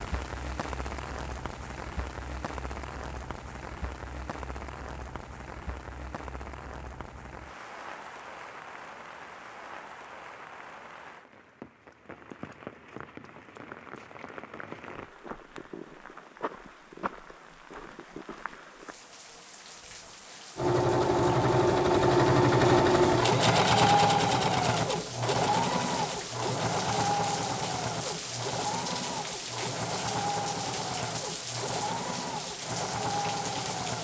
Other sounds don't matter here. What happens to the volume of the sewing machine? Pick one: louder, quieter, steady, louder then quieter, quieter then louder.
quieter.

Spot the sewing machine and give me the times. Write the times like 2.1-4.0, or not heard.
20.6-33.9.